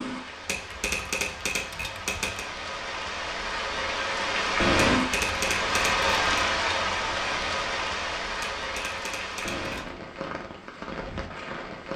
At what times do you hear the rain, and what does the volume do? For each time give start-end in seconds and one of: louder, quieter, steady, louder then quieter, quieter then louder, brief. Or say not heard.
0.0-11.9 louder then quieter.